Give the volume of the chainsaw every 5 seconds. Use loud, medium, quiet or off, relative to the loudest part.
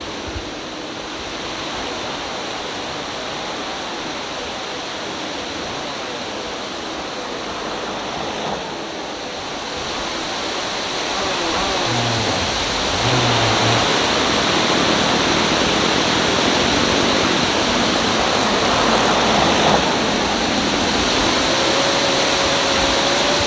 medium, medium, loud, loud, loud.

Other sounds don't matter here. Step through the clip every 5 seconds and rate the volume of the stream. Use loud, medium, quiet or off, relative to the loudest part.
medium, medium, loud, loud, loud.